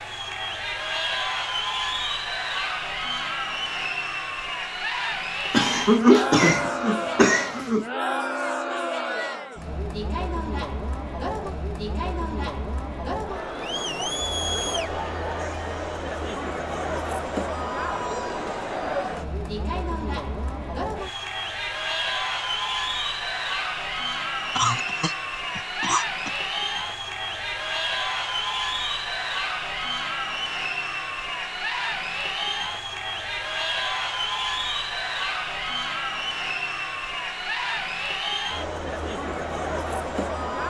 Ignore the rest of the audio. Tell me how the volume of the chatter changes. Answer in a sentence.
The loudness of the chatter stays about the same.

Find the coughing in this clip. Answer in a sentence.
The coughing can be heard from 5.5 to 7.8 s and from 24.6 to 26.4 s.